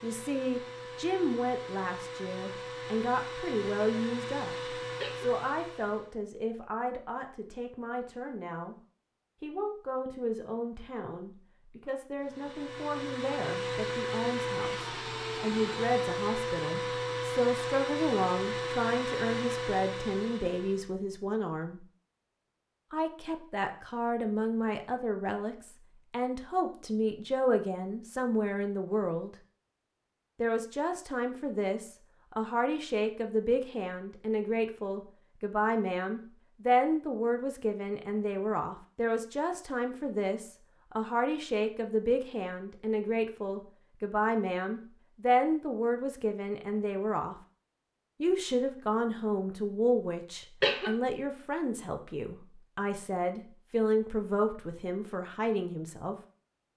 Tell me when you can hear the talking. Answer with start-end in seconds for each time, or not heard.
0.0-8.8, 9.4-21.9, 22.9-29.4, 30.4-47.4, 48.2-56.1.